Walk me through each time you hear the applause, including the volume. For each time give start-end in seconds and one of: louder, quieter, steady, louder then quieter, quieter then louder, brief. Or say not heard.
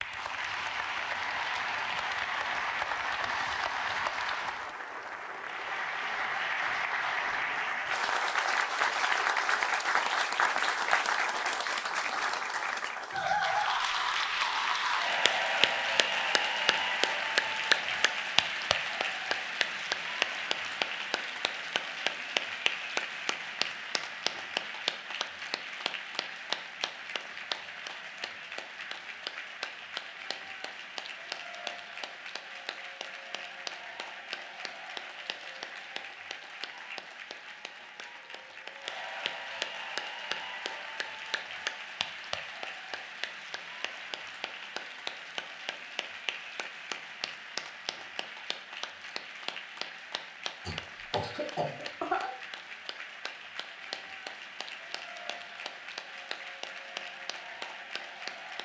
0.0-58.6 quieter.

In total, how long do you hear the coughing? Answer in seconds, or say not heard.
2 s.